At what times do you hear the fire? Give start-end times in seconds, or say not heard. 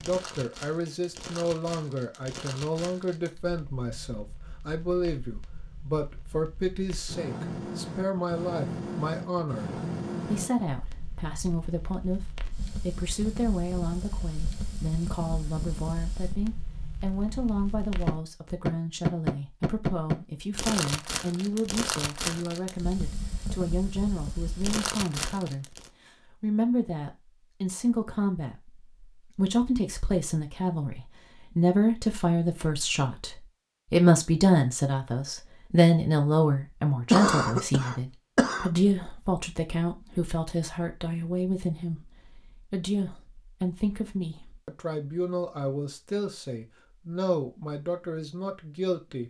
0.0-25.9.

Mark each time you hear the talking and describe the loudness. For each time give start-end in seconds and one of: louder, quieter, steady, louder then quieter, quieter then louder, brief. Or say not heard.
0.0-49.2 louder then quieter.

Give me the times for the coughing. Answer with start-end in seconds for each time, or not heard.
37.1-38.7.